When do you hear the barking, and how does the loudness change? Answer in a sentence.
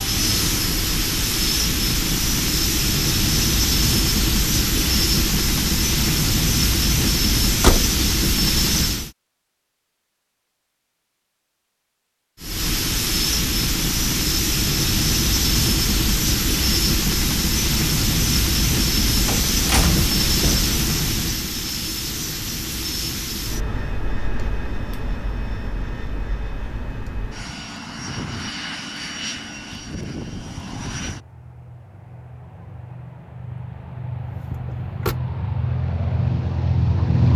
The barking can't be heard in this clip.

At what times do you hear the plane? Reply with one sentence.
The plane can be heard from 0.0 to 9.1 s and from 12.4 to 37.3 s.